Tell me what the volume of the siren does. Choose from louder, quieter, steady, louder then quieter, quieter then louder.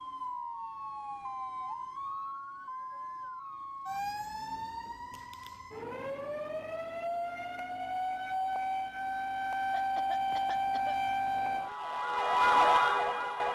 louder.